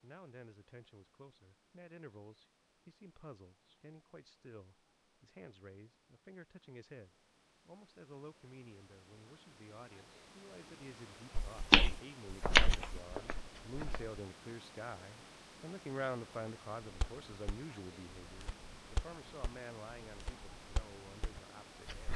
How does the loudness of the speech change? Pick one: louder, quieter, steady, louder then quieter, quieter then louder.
louder then quieter.